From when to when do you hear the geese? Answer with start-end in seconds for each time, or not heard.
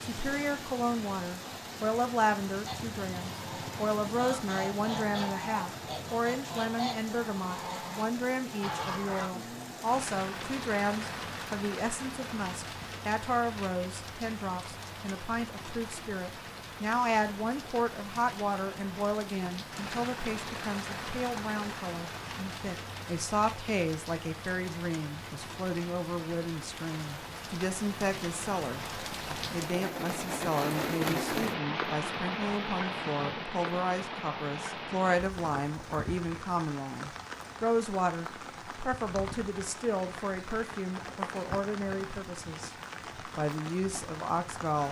2.6-9.3.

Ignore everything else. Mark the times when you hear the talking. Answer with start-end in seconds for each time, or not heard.
0.0-28.9, 29.5-42.7, 43.4-44.8.